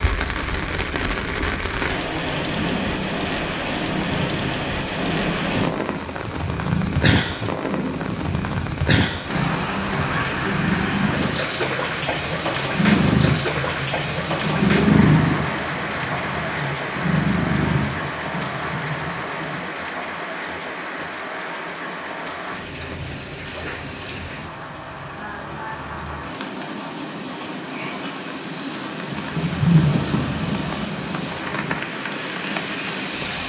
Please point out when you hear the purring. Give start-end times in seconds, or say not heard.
2.1-19.7, 29.1-31.9.